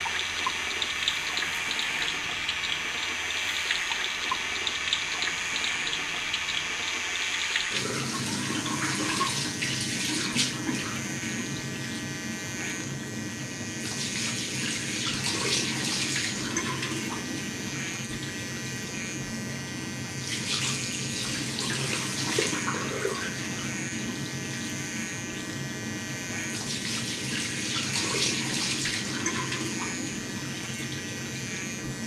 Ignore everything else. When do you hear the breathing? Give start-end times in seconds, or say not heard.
not heard.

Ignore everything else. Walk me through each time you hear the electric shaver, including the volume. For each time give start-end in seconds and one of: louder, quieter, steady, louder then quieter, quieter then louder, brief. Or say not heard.
0.0-32.0 steady.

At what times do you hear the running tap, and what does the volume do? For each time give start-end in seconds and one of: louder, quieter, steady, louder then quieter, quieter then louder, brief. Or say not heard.
0.0-32.0 steady.